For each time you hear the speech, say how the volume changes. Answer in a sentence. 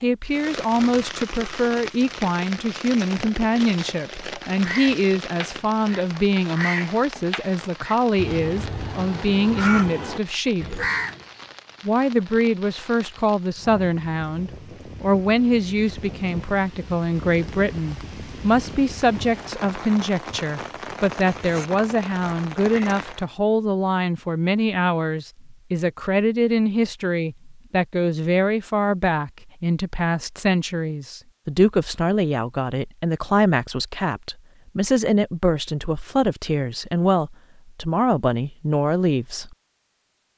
You can hear the speech from 0.0 to 10.8 s, at a steady volume; and from 11.8 to 39.5 s, at a steady volume.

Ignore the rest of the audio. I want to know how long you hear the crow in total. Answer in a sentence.
The crow can be heard for 7 seconds in total.